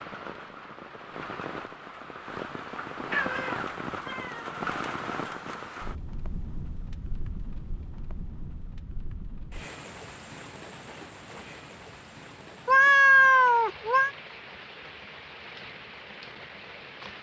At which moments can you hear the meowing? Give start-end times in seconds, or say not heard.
3.1-4.7, 12.7-14.1.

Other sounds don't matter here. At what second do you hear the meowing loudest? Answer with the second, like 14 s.
13 s.